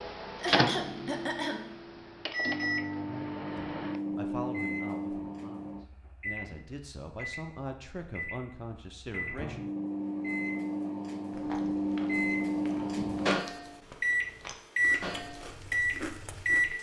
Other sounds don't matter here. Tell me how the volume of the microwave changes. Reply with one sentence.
The loudness of the microwave goes down, then up.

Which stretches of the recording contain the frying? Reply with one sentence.
You can't hear the frying here.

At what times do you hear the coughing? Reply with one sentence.
The coughing can be heard from 0.3 to 1.6 s.